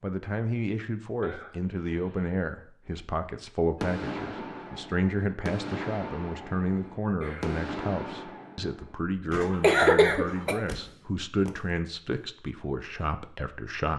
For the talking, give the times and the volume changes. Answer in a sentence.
The talking can be heard from 0.0 to 13.9 s, at a steady volume.